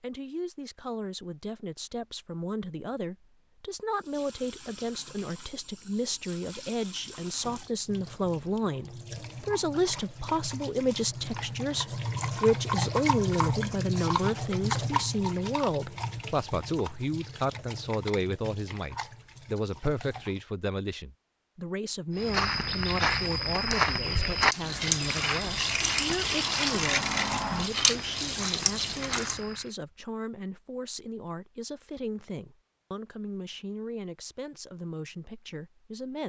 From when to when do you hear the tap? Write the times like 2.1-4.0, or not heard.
3.9-20.4, 24.5-29.4.